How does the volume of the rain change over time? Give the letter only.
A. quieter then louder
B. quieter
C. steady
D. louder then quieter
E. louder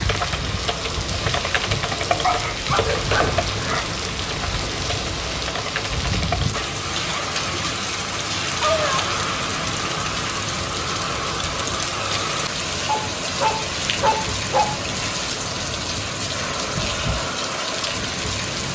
C.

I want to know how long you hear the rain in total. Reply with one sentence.
The rain can be heard for 19 seconds in total.